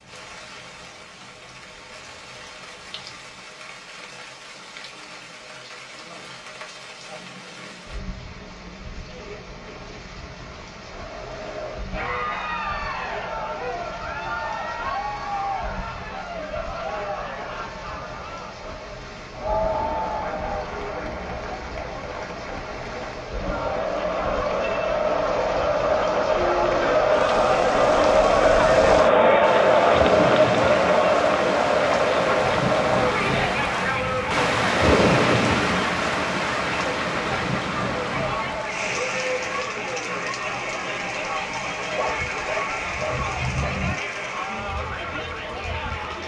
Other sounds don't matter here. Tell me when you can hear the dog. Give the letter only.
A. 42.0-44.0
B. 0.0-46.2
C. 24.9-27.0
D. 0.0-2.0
A.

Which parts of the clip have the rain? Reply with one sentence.
You can hear the rain from 0.0 to 46.2 s.